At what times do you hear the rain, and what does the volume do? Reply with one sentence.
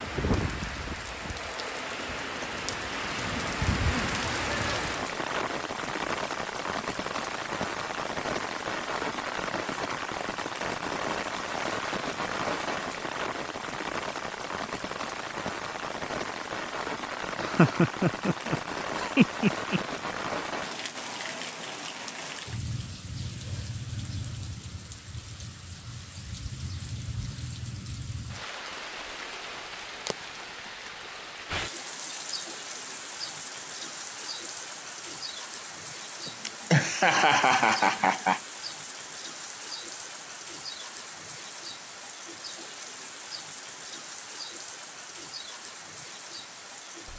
The rain can be heard from 0.0 to 47.1 s, getting quieter.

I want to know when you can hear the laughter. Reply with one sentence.
The laughter can be heard from 17.4 to 19.8 s and from 36.2 to 38.4 s.